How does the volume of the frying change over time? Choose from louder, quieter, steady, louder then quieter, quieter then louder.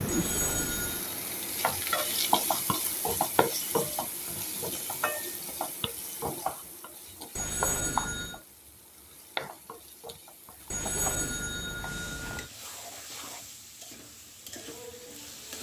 quieter.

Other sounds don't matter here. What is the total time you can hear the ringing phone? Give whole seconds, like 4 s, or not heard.
4 s.